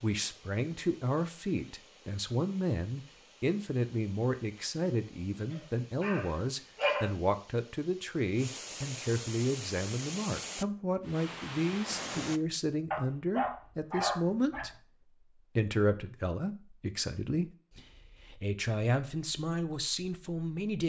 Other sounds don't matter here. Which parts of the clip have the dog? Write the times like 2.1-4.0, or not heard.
5.5-7.1, 12.9-14.7.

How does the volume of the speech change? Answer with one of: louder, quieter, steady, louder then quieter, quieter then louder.
steady.